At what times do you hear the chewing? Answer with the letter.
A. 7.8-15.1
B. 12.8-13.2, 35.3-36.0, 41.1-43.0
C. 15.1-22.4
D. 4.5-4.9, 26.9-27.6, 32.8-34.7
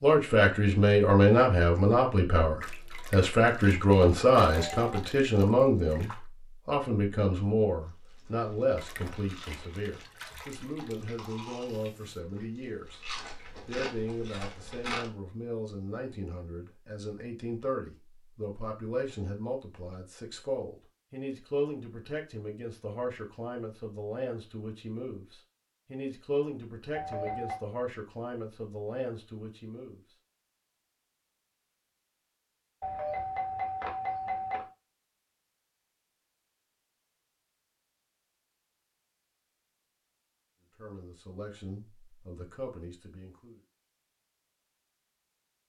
A.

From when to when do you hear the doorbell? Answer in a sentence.
The doorbell can be heard from 4.5 to 4.9 s, from 26.9 to 27.6 s and from 32.8 to 34.7 s.